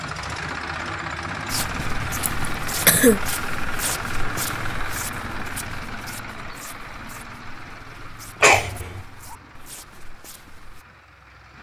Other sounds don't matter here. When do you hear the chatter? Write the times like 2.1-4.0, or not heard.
not heard.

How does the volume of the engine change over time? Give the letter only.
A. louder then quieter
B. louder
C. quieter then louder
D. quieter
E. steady
D.